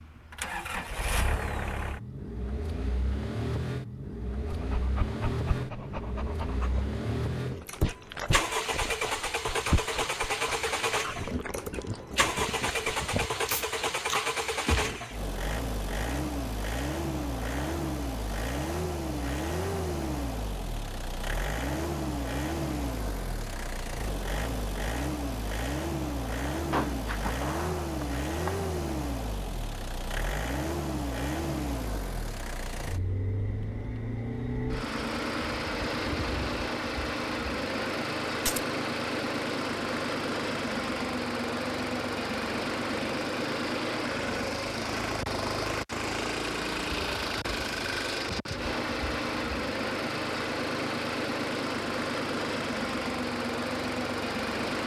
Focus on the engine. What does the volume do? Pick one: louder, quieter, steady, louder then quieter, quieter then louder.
steady.